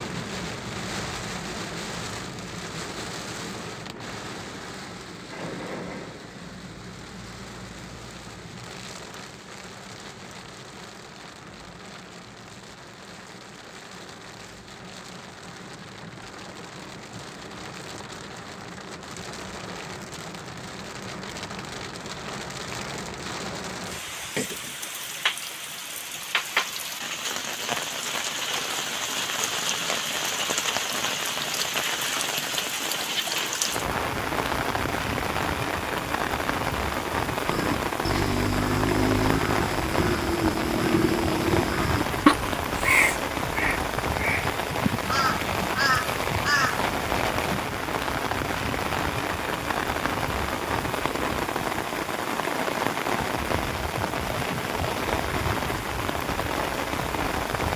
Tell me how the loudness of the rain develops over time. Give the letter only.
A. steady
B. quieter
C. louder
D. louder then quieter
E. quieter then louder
C.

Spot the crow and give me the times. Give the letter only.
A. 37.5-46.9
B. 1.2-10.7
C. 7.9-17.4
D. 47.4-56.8
A.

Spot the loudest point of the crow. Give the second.
42 s.